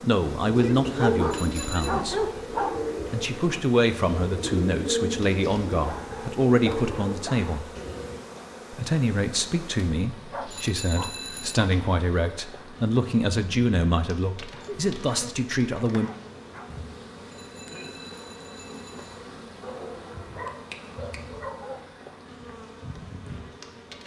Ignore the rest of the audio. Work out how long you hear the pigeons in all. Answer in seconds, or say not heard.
8 s.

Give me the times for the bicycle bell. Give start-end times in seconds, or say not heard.
1.3-1.9, 10.5-11.6, 17.3-19.2.